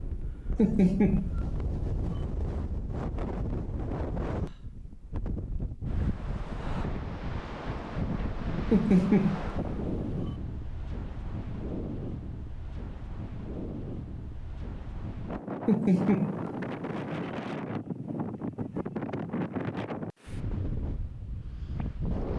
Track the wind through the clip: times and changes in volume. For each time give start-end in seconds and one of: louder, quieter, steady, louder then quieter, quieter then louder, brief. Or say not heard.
0.0-22.3 steady.